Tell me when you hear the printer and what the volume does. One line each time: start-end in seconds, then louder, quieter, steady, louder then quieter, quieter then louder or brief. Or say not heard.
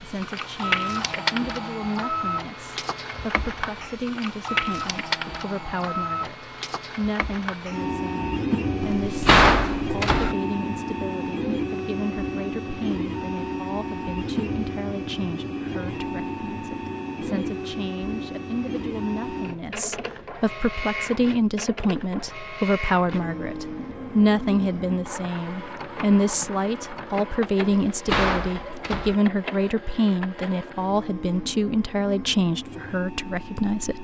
0.0-34.0 quieter.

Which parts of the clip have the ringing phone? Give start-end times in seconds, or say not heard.
not heard.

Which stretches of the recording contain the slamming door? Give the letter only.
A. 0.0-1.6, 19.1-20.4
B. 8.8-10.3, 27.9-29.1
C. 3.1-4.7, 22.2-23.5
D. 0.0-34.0
B.